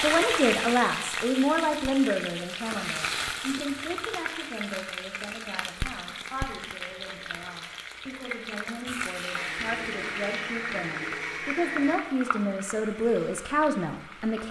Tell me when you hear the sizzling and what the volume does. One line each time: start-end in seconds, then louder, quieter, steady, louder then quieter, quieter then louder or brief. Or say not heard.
0.0-14.4 quieter.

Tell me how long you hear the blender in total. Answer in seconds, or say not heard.
3 s.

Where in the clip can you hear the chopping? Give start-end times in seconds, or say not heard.
not heard.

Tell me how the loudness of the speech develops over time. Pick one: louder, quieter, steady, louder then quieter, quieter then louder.
quieter then louder.